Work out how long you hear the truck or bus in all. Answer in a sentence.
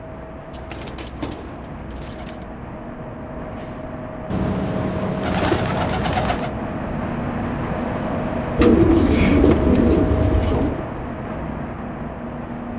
The truck or bus can be heard for 13 seconds in total.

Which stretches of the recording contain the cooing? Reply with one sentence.
The cooing can be heard from 0.5 to 2.5 s, from 4.3 to 6.5 s and from 8.6 to 10.8 s.